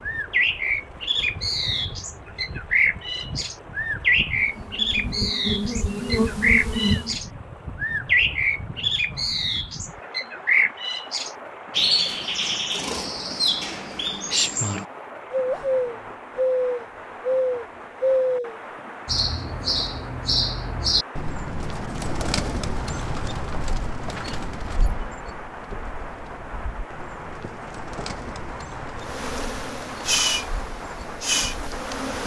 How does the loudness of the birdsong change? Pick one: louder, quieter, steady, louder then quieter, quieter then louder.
quieter.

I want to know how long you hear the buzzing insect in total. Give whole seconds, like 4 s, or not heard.
6 s.